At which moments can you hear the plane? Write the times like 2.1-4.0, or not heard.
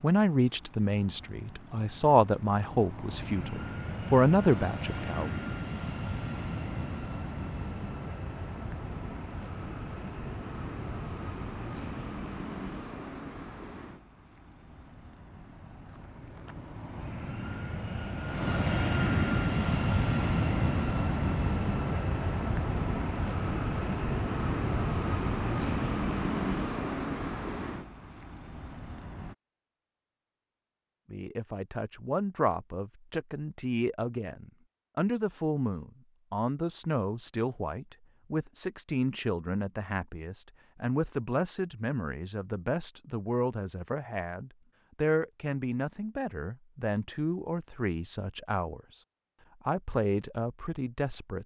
0.0-29.4.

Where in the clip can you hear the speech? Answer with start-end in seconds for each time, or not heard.
0.0-5.3, 31.1-49.0, 49.6-51.4.